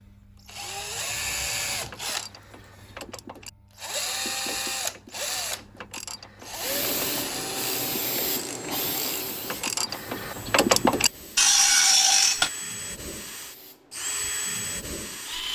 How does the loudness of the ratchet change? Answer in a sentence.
The loudness of the ratchet goes up.